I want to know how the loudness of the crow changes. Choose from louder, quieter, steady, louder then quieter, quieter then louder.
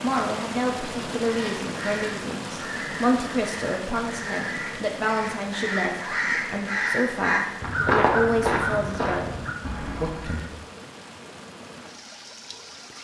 louder then quieter.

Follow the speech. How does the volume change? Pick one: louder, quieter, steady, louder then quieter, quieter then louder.
steady.